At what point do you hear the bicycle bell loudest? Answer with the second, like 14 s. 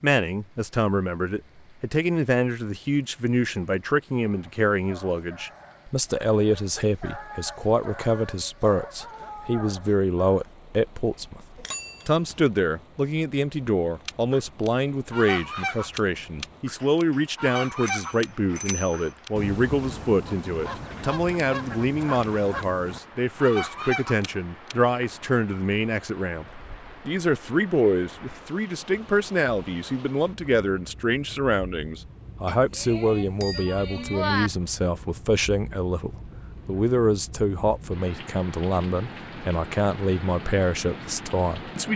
34 s.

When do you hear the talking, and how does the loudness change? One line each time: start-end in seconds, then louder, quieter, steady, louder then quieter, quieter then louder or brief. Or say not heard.
0.0-41.9 steady.